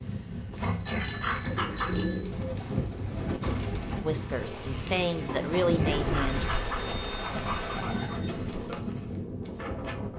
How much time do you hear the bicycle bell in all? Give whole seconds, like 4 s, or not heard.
3 s.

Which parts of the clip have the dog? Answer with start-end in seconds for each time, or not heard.
0.5-2.0, 5.4-8.2.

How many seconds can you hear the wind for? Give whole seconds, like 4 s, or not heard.
10 s.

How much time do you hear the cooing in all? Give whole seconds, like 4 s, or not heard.
8 s.